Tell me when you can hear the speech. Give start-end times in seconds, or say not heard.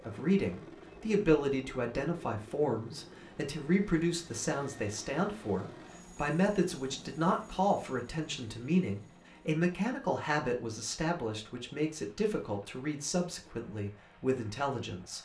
0.1-15.1.